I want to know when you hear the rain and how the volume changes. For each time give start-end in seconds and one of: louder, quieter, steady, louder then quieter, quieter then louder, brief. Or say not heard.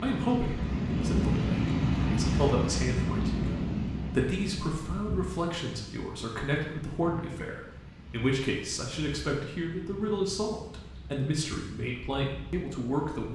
0.0-13.3 quieter.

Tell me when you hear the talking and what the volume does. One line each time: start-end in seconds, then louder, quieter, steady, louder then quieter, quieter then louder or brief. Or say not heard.
0.0-13.3 steady.